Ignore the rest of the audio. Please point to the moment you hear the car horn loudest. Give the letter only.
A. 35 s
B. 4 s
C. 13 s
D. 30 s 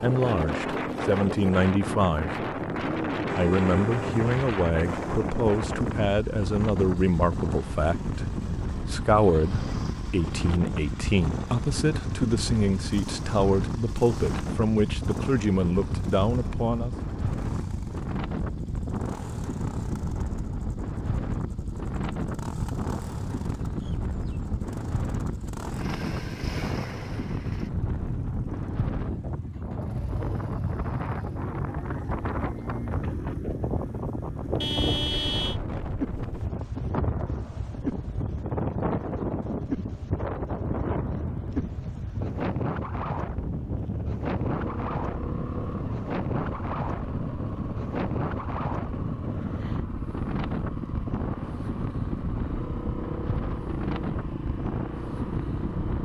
A.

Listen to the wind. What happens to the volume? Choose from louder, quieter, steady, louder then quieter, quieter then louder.
steady.